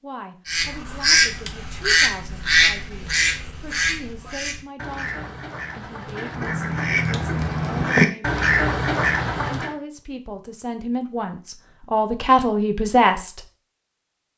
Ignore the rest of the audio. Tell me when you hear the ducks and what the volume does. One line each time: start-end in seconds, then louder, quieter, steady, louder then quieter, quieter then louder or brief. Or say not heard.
0.5-9.8 quieter then louder.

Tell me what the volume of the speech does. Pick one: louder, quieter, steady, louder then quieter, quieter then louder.
louder.